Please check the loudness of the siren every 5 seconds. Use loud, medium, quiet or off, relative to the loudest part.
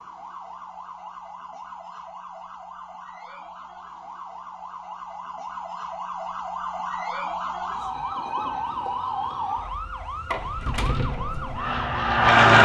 medium, loud, loud.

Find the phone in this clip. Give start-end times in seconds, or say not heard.
not heard.